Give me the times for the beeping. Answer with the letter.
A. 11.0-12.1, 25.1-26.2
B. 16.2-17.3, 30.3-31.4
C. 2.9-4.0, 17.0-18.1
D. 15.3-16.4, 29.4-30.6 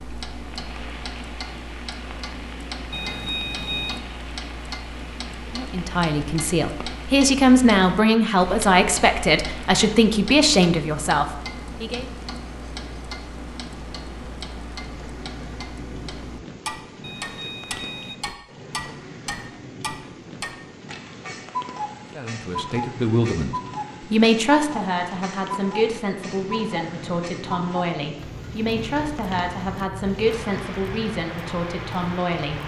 C.